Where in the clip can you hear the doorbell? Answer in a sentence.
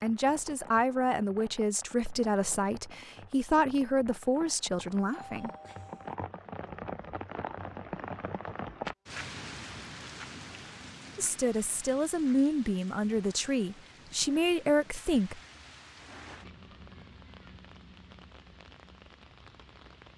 You can hear the doorbell from 5.1 to 6.2 s.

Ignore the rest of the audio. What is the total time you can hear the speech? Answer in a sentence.
You can hear the speech for 10 seconds altogether.